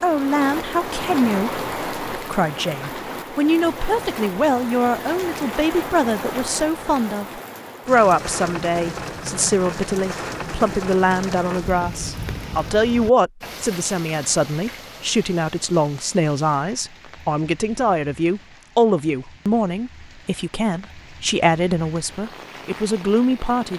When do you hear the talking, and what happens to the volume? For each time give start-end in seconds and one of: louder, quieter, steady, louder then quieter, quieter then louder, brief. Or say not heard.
0.0-23.7 steady.